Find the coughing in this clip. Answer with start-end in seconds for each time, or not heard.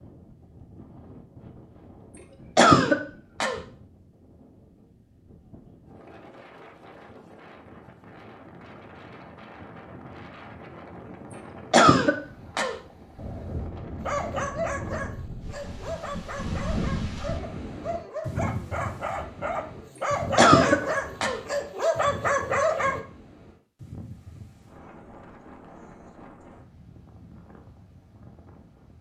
2.5-3.6, 11.7-12.8, 20.4-21.4.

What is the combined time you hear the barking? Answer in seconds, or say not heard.
9 s.